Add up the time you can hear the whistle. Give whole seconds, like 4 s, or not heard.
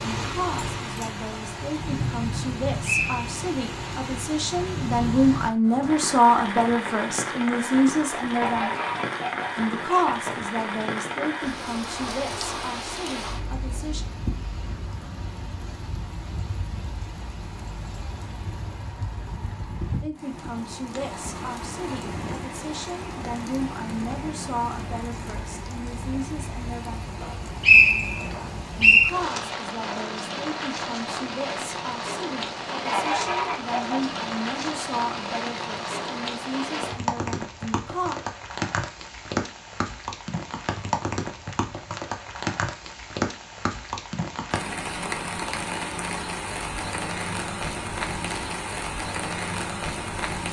2 s.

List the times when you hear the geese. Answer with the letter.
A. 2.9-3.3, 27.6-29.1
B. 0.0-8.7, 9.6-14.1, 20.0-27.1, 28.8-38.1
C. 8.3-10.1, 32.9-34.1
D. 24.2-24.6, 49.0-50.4
C.